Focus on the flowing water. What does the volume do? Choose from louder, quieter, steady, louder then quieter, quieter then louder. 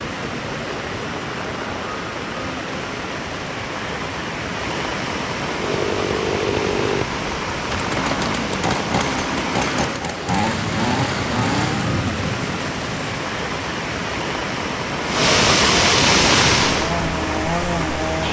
louder.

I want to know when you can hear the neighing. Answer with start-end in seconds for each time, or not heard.
not heard.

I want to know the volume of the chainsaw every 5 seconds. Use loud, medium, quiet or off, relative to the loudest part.
off, loud, loud, loud.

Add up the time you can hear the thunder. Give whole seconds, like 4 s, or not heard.
3 s.